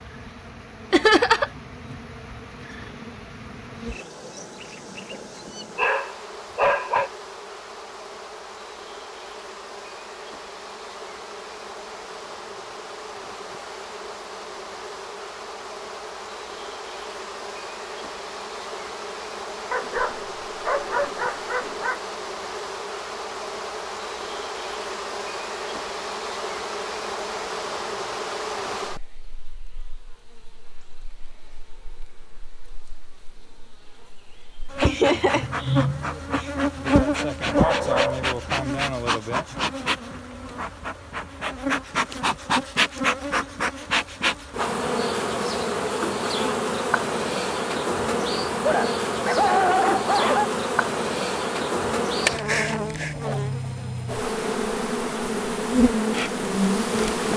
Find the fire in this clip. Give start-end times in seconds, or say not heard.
not heard.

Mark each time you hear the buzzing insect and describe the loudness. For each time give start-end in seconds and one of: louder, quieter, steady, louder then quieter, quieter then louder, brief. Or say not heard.
0.0-57.3 louder.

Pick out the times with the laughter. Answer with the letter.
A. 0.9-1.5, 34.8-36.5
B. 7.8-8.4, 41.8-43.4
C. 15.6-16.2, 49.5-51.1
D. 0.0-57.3
A.